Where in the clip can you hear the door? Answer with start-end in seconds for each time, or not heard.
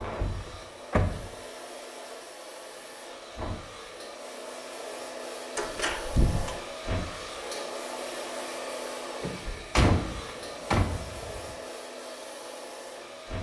0.2-1.2, 5.5-6.5, 9.2-11.6.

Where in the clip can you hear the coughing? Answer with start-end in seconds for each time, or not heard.
not heard.